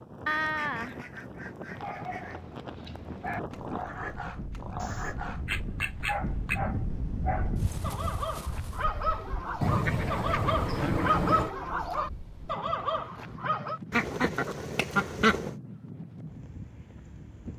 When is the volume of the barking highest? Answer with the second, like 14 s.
11 s.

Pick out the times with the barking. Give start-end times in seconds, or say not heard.
1.8-13.8.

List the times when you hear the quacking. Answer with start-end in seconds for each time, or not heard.
0.2-2.4, 4.8-6.6, 9.6-11.5, 13.9-15.6.